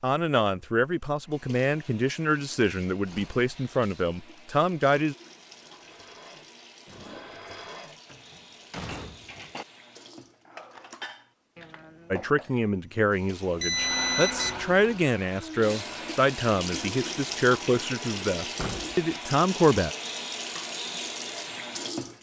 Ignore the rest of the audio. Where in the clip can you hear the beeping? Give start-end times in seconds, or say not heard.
13.6-15.1.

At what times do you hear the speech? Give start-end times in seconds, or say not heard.
0.0-5.2, 12.1-19.9.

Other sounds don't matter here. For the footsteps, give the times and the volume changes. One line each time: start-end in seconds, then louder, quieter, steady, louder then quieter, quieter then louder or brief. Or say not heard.
not heard.